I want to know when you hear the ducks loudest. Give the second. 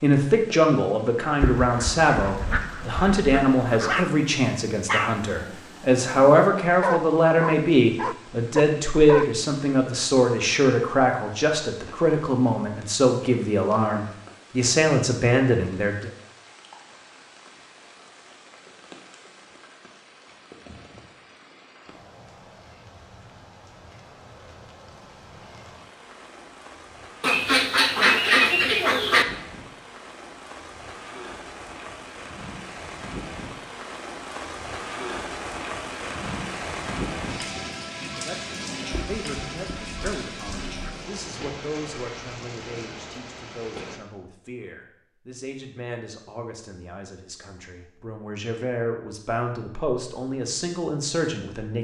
28 s.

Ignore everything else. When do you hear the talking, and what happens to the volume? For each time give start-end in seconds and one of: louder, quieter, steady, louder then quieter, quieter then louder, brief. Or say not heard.
0.0-16.1 steady
38.1-51.7 louder.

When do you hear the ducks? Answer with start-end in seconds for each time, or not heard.
1.4-4.1, 27.2-29.2, 38.9-41.0.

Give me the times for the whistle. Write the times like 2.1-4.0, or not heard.
not heard.